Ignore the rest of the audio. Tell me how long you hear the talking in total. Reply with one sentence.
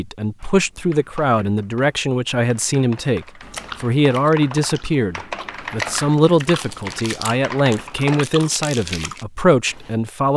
The talking can be heard for 10 seconds in total.